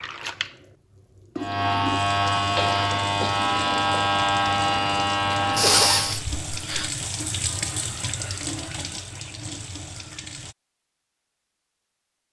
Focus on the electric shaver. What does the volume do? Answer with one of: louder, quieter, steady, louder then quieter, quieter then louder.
steady.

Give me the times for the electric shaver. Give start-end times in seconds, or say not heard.
1.4-6.2.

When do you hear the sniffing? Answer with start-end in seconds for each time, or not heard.
5.3-6.9.